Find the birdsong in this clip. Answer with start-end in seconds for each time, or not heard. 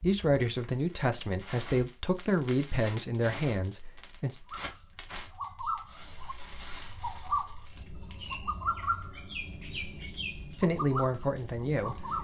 4.5-12.1.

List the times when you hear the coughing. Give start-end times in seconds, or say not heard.
not heard.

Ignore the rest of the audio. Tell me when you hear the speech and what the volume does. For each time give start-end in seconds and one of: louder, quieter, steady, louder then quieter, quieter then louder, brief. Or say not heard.
0.0-4.3 steady
10.6-12.1 brief.